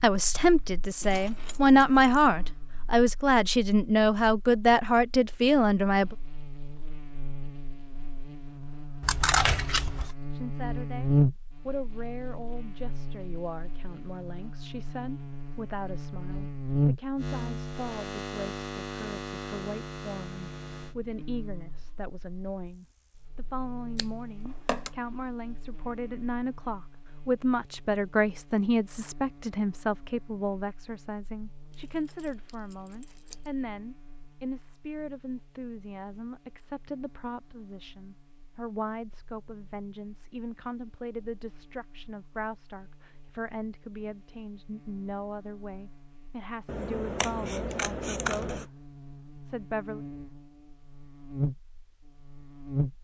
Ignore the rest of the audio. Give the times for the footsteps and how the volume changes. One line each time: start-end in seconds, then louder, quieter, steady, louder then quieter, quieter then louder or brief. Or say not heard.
not heard.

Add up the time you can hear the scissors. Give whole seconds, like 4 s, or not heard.
4 s.